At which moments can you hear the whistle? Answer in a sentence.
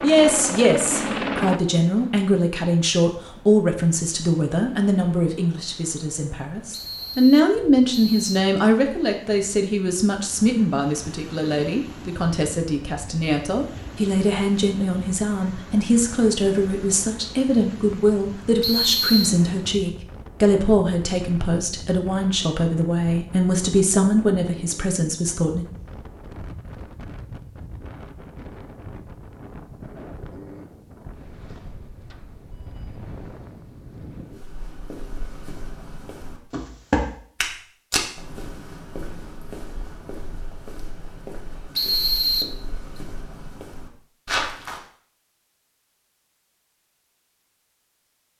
The whistle can be heard from 6.7 to 8.3 s, from 18.6 to 19.3 s and from 41.8 to 42.5 s.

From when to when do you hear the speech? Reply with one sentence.
You can hear the speech from 0.0 to 25.6 s.